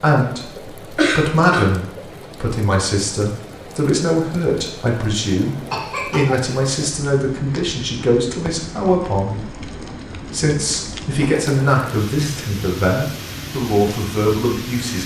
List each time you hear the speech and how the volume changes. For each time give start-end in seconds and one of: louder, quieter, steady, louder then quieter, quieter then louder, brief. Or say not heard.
0.0-15.0 steady.